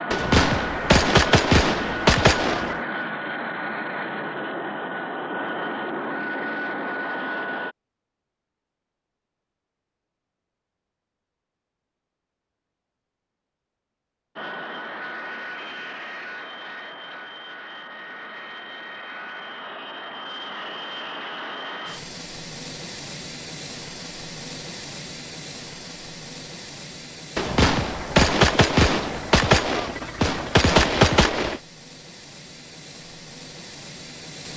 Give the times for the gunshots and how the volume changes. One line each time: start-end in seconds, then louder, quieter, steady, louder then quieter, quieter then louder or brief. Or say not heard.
0.1-2.8 brief
27.4-31.6 quieter then louder.